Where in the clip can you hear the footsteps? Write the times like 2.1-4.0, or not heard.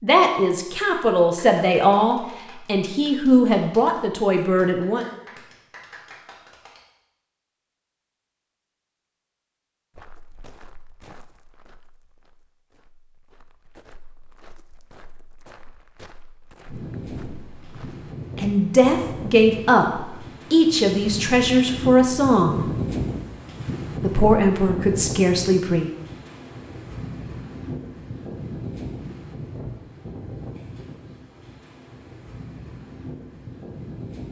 9.9-18.1.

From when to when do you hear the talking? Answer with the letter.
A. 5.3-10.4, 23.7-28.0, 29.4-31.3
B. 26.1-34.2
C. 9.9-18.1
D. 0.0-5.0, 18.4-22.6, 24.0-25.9
D.